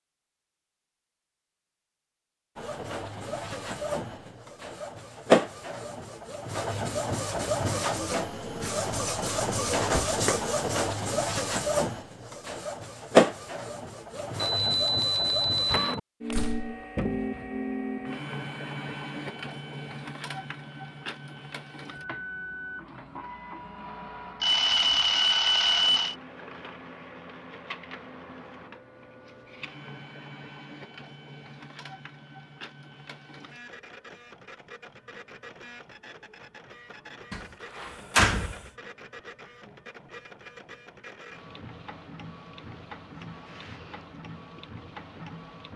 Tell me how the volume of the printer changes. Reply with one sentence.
The loudness of the printer goes down.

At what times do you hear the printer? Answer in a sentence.
You can hear the printer from 2.5 to 45.7 s.